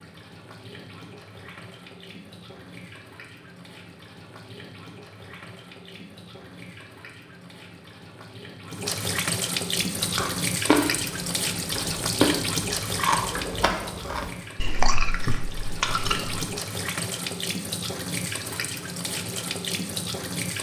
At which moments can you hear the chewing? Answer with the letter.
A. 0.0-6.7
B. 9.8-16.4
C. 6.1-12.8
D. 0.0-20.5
B.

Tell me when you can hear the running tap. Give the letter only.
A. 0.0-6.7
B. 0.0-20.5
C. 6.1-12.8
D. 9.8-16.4
B.